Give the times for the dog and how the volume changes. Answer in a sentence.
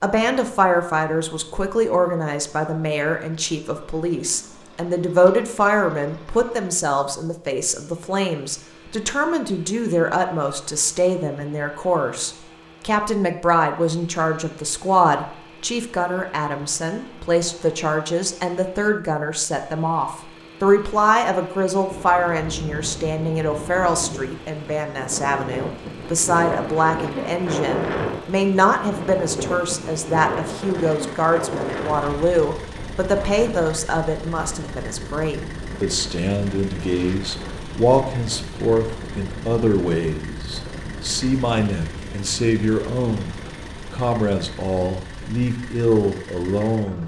The dog can't be heard in this clip.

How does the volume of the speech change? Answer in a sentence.
The volume of the speech stays about the same.